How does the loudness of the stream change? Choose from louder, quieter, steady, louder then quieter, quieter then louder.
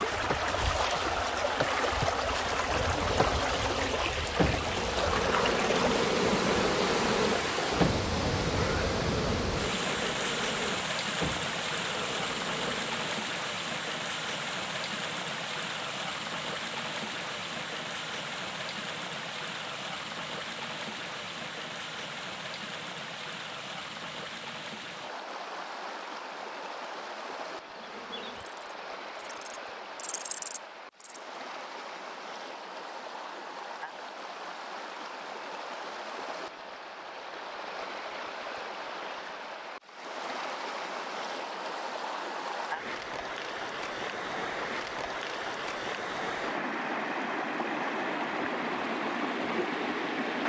quieter then louder.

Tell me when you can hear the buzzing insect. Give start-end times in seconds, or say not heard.
0.1-13.1, 27.6-31.2.